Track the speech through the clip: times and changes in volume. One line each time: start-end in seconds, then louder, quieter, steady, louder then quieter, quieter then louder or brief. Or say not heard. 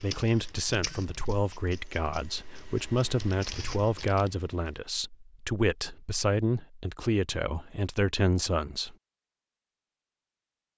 0.0-8.9 steady.